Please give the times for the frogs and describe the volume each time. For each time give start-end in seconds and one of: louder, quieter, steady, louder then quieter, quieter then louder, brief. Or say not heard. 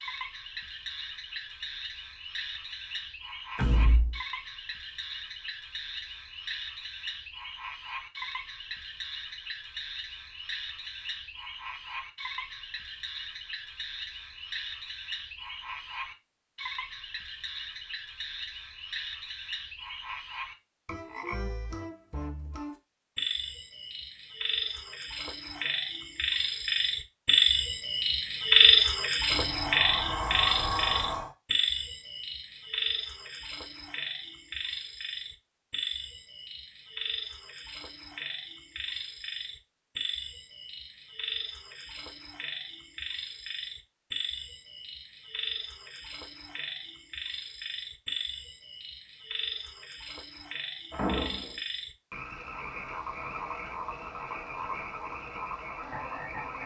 0.0-56.6 louder then quieter.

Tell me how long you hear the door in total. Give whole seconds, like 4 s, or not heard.
3 s.